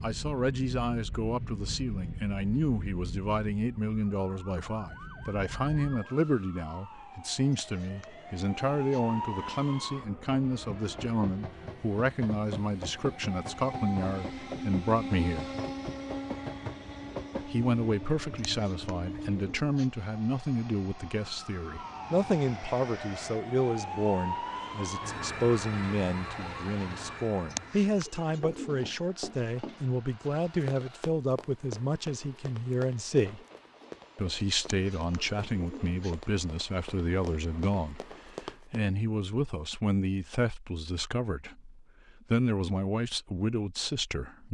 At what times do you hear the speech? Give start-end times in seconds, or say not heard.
0.0-15.6, 17.4-33.4, 34.1-44.4.